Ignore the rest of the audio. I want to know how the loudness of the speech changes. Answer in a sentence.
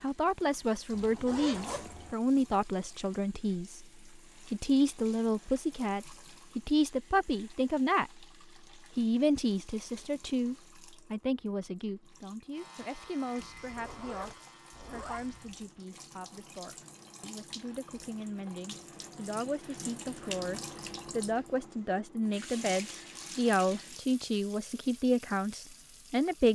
The loudness of the speech goes down, then up.